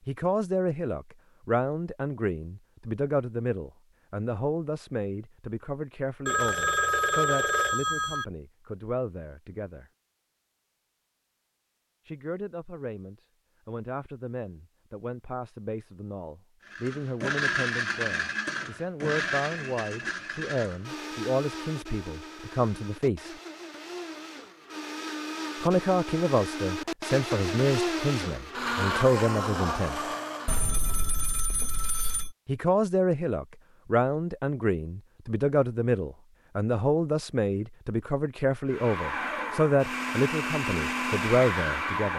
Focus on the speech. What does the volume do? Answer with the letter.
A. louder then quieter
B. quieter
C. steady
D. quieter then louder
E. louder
D.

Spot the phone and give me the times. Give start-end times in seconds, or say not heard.
6.2-8.2, 30.4-32.4.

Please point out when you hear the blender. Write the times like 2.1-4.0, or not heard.
16.6-30.6, 38.6-42.1.